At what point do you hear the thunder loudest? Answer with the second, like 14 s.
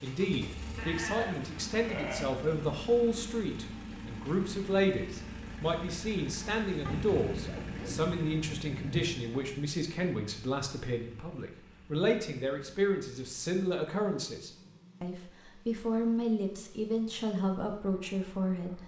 9 s.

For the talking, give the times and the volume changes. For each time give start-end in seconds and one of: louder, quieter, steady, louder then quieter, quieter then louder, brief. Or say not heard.
0.0-18.8 steady.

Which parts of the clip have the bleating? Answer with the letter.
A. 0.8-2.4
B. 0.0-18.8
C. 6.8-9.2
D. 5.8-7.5
A.